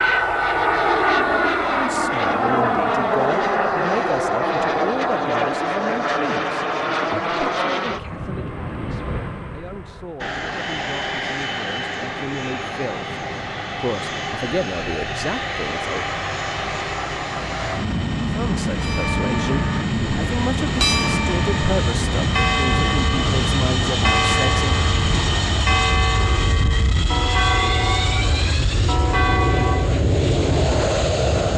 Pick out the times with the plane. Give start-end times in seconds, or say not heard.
0.0-31.5.